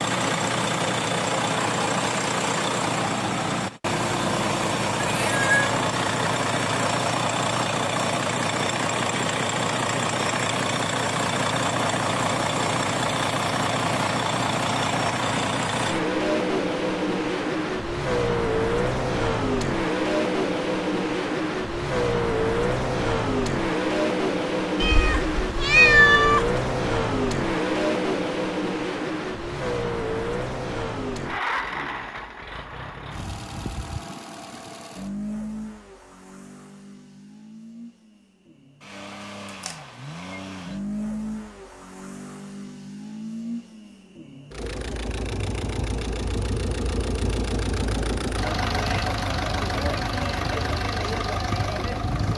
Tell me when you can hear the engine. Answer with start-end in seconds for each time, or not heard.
0.0-52.3.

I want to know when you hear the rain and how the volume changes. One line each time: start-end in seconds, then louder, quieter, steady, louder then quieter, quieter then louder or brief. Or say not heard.
not heard.